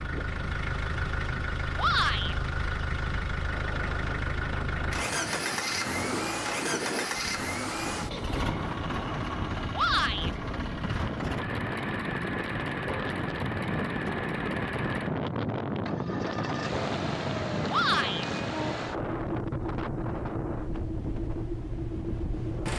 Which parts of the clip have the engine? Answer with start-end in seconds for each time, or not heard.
0.0-22.7.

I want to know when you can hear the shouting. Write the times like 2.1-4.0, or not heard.
1.8-2.4, 9.7-10.3, 17.6-18.2.